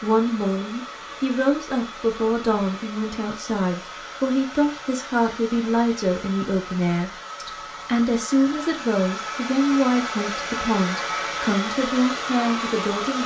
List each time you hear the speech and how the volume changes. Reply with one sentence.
You can hear the speech from 0.0 to 13.2 s, at a steady volume.